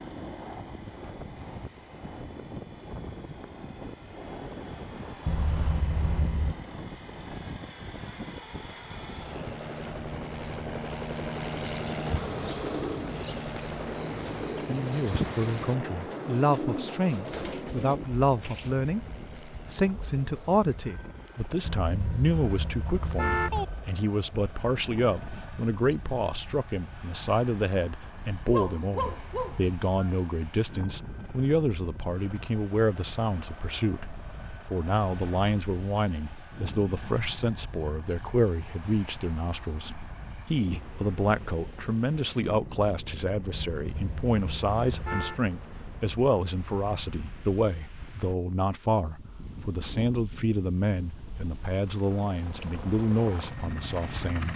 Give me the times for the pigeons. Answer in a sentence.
The pigeons can be heard from 11.7 to 18.8 s.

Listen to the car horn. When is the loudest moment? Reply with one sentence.
The volume of the car horn peaks at 23 seconds.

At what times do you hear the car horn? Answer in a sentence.
The car horn can be heard from 5.2 to 6.5 s, from 21.6 to 23.6 s and from 43.5 to 45.4 s.